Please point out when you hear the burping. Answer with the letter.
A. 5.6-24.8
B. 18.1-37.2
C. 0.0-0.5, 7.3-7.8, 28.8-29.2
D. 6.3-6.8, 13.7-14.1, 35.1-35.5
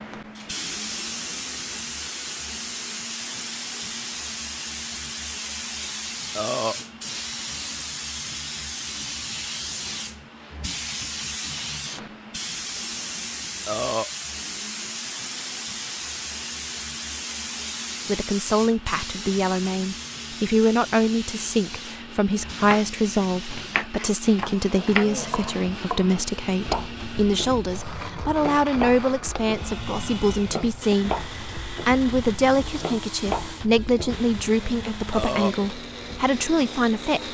D.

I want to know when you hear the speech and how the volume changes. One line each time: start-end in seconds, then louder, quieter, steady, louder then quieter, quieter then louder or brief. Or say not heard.
18.1-37.2 steady.